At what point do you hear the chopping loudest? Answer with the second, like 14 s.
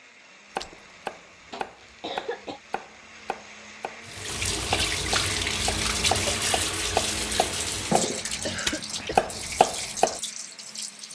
9 s.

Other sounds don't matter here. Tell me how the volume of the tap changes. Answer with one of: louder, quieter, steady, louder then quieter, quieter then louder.
quieter.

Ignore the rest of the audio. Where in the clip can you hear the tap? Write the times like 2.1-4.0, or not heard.
4.0-11.1.